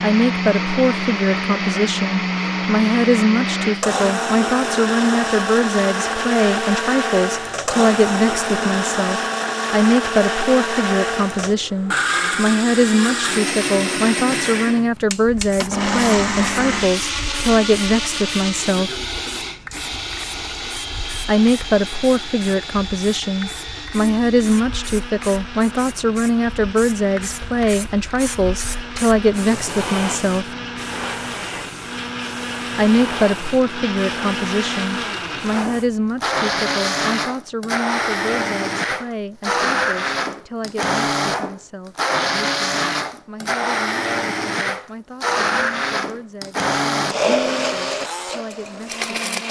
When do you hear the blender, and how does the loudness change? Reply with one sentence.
The blender can be heard from 0.0 to 49.4 s, getting quieter then louder.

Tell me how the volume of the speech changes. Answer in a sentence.
The volume of the speech goes down.